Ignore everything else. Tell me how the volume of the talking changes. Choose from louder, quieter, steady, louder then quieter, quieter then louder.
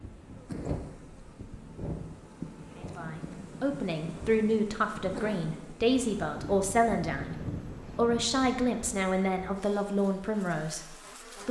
steady.